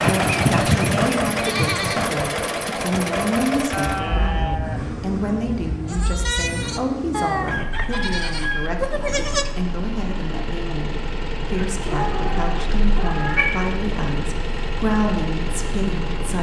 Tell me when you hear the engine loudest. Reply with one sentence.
The loudest moment of the engine is at 1 second.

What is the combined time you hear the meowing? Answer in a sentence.
You can hear the meowing for 2 seconds altogether.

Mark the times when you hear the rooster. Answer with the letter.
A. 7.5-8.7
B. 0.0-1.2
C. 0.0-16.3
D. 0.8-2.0
A.